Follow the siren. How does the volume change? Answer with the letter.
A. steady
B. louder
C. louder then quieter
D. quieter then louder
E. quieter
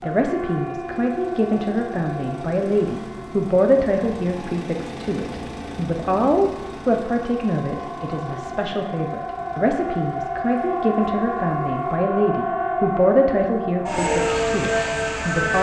D.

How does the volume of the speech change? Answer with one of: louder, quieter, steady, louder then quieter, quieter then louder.
steady.